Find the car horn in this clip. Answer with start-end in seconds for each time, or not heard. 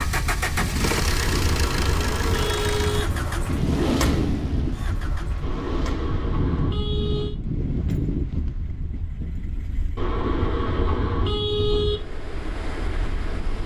1.0-3.0, 5.4-7.3, 9.9-12.0.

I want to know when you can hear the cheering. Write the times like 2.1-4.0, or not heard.
not heard.